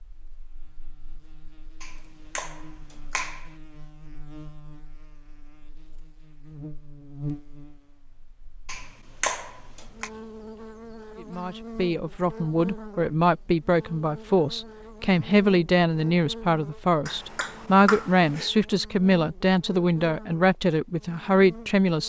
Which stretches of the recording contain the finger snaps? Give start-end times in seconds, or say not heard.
1.8-3.5, 8.7-10.1, 17.1-18.5.